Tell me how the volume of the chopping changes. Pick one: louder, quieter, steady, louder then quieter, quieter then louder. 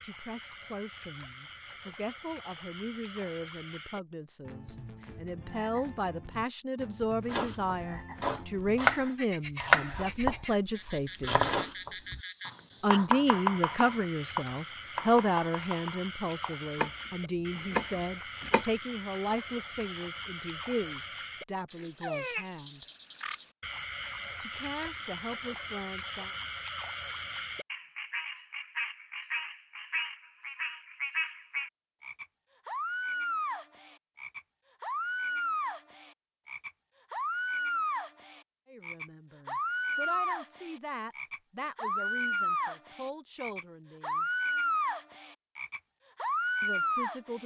quieter.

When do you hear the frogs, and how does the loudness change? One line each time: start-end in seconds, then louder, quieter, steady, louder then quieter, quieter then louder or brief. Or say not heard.
0.0-47.4 louder.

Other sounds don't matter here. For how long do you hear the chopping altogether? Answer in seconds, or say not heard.
11 s.